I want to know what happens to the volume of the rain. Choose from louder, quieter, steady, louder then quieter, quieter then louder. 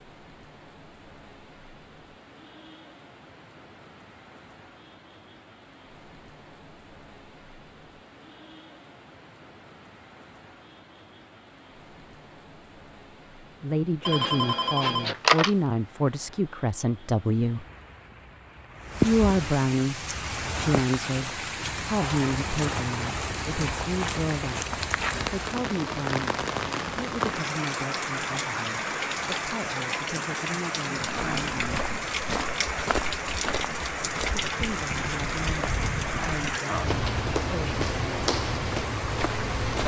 louder.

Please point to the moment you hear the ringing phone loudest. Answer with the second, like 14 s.
15 s.